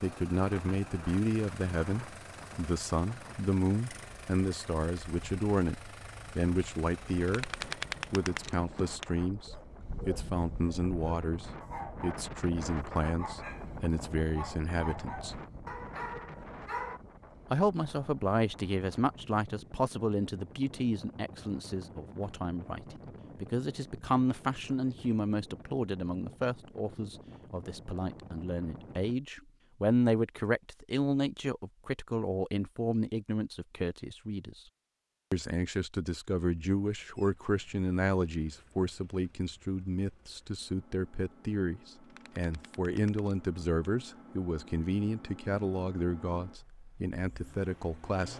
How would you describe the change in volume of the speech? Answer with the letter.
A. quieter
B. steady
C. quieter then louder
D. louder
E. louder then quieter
B.